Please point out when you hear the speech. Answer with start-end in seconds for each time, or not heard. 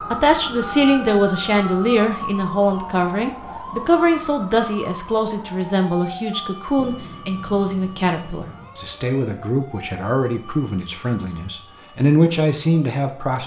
0.0-13.4.